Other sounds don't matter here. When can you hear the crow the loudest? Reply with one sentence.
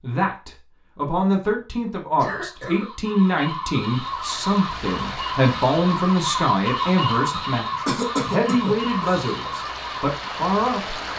The volume of the crow peaks at 7 seconds.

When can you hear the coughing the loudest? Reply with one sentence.
The volume of the coughing peaks at 8 seconds.